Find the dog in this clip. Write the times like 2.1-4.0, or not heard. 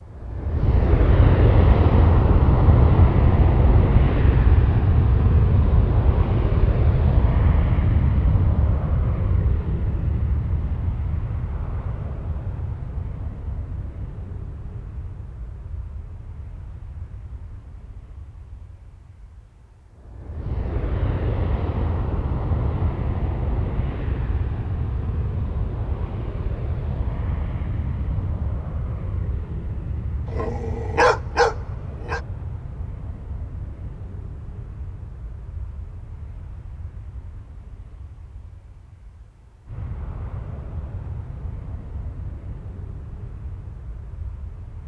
30.2-32.2.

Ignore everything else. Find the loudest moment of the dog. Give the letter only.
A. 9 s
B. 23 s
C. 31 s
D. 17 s
C.